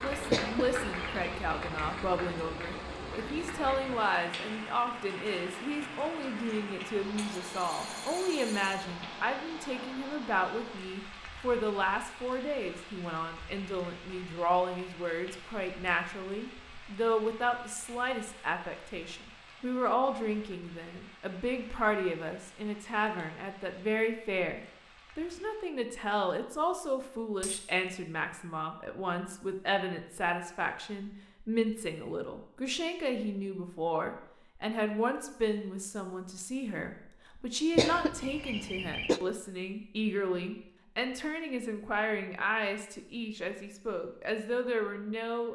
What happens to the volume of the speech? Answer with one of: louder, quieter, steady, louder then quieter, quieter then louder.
steady.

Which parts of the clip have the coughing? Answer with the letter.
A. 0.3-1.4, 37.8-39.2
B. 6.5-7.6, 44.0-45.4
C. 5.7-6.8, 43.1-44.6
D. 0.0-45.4
A.